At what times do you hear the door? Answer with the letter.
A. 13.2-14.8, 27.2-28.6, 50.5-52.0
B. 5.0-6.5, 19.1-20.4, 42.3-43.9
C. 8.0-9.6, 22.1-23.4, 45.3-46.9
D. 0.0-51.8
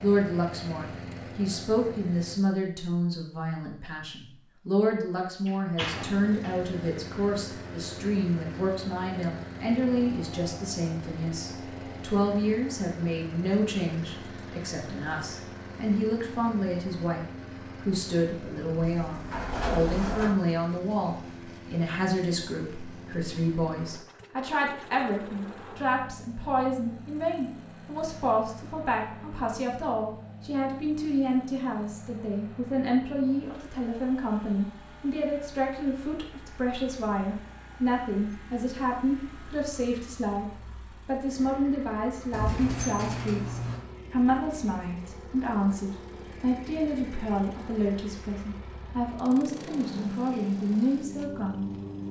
B.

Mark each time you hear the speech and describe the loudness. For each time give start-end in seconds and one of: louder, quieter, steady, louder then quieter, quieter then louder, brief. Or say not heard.
0.0-51.8 steady.